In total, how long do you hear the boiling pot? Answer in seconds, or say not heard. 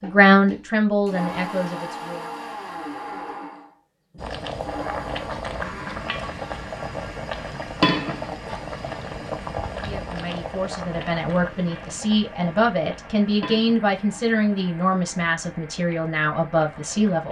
13 s.